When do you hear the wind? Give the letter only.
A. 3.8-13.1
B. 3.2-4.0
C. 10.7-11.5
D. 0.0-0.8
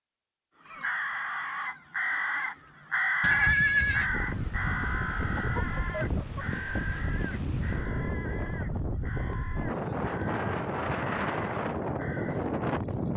A.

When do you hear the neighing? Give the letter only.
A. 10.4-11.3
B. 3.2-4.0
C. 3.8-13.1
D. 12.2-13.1
B.